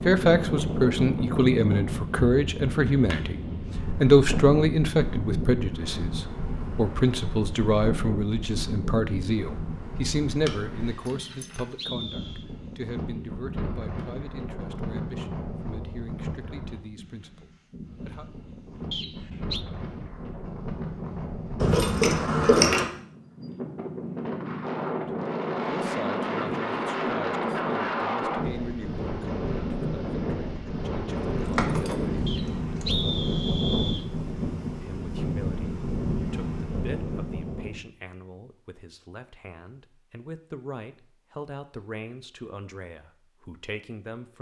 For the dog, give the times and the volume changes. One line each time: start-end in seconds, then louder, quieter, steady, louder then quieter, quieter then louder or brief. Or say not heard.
not heard.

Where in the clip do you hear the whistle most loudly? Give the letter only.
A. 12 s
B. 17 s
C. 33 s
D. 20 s
C.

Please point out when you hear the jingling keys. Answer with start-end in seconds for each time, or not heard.
10.4-11.8, 21.6-22.9, 31.4-33.0.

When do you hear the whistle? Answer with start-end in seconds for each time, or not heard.
11.2-12.4, 18.9-19.6, 32.2-34.0.